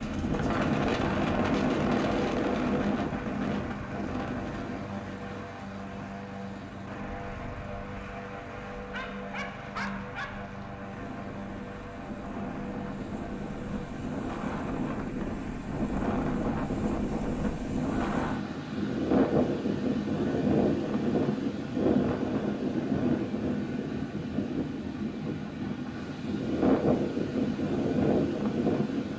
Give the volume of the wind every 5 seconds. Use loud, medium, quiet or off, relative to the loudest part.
loud, quiet, medium, loud, loud, loud.